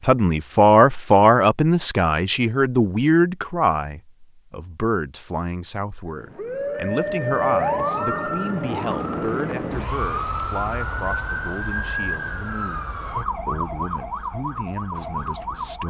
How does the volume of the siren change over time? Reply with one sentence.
The loudness of the siren goes down.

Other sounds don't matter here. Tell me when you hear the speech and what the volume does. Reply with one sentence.
You can hear the speech from 0.0 to 12.8 s, getting quieter; and briefly from 13.4 to 15.8 s.